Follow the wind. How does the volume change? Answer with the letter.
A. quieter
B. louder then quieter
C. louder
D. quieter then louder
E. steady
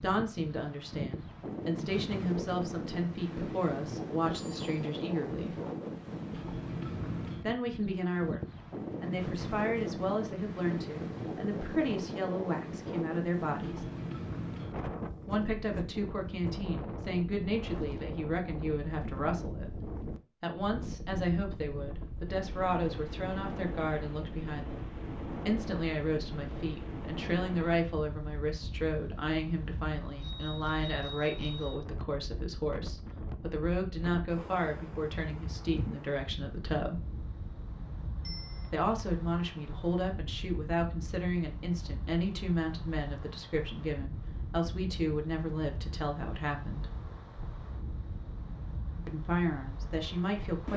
A.